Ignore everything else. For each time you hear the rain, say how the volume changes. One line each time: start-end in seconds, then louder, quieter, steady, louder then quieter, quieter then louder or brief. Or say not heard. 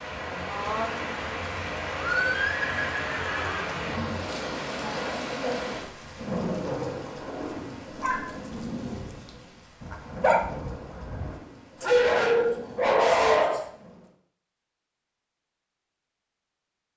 0.0-14.2 quieter.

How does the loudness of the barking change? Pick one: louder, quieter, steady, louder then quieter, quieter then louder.
louder.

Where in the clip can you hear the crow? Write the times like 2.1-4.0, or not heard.
not heard.